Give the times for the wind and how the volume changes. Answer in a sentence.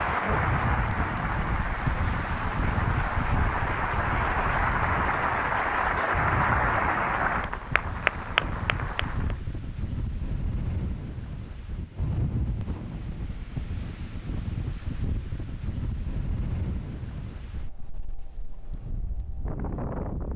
The wind can be heard from 0.0 to 20.3 s, getting quieter.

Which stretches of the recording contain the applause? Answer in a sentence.
The applause can be heard from 0.0 to 9.3 s.